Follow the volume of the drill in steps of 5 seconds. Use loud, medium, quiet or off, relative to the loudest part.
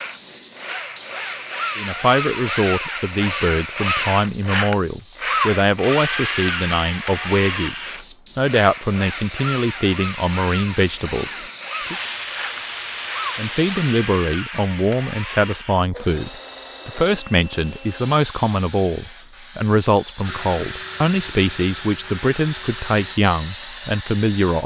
loud, loud, medium, medium, medium.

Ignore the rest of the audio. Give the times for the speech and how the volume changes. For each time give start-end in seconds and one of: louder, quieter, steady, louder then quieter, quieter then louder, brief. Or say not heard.
1.8-11.9 steady
13.3-24.6 steady.